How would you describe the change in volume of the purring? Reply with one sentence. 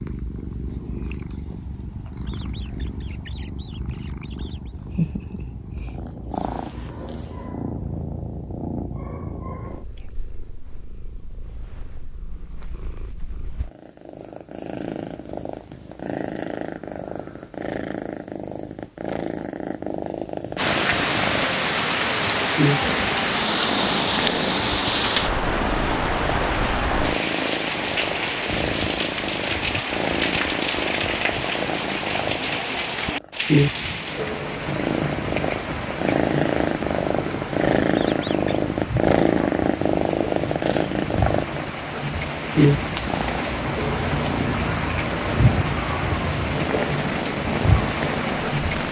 The loudness of the purring goes up.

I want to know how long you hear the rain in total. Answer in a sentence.
The rain can be heard for 28 seconds in total.